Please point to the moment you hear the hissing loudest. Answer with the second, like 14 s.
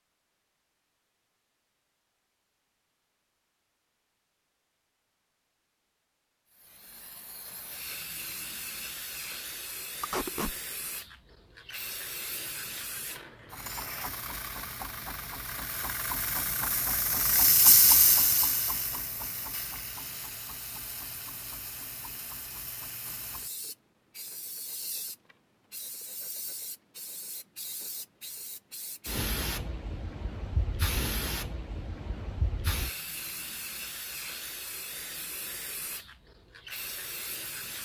18 s.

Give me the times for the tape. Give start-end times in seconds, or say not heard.
10.0-10.6.